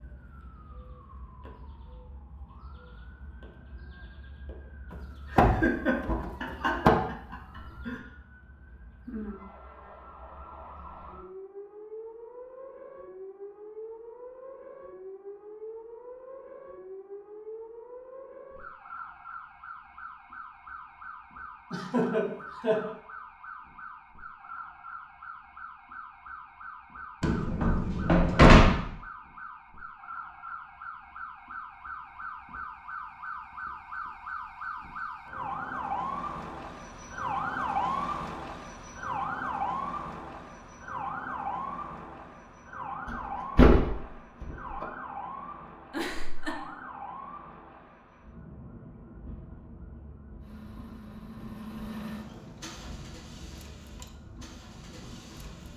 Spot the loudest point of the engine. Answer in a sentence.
The loudest moment of the engine is at 52 seconds.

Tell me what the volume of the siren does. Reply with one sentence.
The volume of the siren goes up, then down.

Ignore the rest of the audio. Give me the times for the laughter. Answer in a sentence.
The laughter can be heard from 5.3 to 8.0 s, from 21.7 to 22.9 s and from 45.9 to 46.6 s.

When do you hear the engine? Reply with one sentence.
You can hear the engine from 50.4 to 55.7 s.